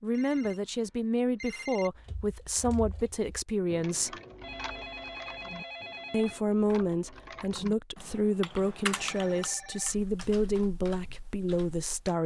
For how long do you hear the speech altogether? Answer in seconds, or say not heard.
10 s.